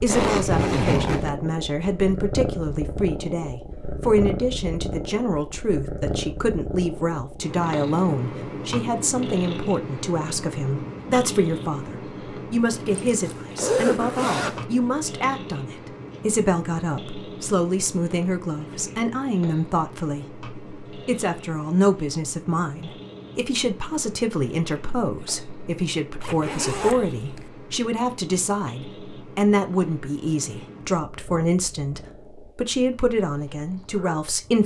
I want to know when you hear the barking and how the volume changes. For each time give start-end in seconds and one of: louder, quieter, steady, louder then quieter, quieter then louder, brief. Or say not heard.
not heard.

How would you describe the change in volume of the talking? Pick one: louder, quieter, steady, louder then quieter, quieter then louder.
steady.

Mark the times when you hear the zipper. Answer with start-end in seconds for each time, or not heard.
0.1-1.3, 12.9-14.7, 26.2-27.4.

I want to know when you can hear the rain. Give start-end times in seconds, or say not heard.
not heard.